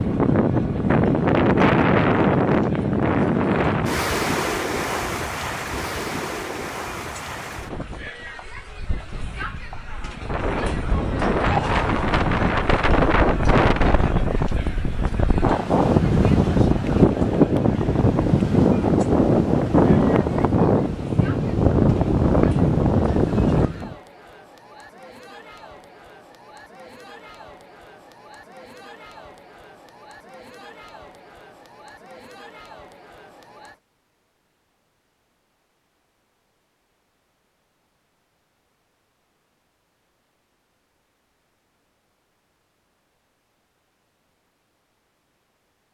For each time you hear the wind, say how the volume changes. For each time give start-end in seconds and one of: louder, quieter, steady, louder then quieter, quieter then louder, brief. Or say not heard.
0.0-23.9 quieter then louder.